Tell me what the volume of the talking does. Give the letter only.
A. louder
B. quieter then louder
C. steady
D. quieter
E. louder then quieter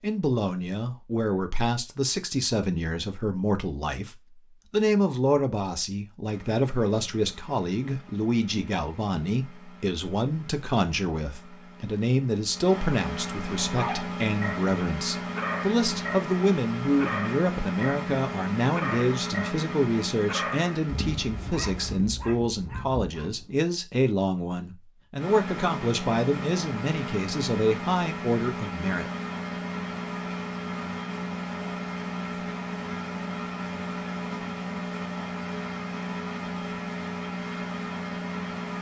C.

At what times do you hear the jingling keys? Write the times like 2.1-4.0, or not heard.
not heard.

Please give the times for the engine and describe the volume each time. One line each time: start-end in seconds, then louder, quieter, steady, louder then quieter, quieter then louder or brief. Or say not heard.
6.2-22.0 louder
25.1-38.7 steady.